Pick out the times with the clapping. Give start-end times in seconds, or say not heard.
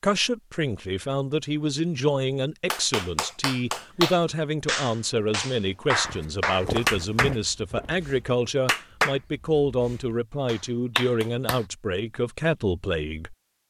2.7-11.7.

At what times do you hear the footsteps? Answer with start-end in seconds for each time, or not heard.
6.0-8.5.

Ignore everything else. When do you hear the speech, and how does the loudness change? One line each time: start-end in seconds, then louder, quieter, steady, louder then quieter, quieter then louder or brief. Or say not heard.
0.0-13.3 steady.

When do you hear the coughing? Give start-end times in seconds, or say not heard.
not heard.